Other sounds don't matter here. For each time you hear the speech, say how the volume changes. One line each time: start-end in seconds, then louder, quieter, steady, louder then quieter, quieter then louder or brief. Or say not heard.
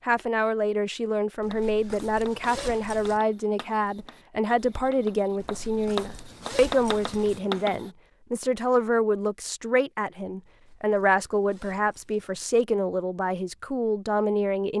0.1-14.7 steady.